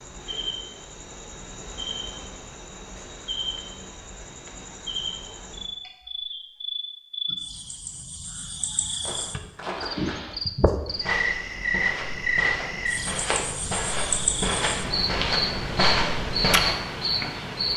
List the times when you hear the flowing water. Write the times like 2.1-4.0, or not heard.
not heard.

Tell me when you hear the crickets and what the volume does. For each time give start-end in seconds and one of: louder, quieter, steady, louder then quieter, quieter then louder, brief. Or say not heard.
0.0-17.7 louder.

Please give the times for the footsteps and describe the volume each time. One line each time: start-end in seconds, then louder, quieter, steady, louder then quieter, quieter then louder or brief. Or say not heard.
9.0-16.8 louder.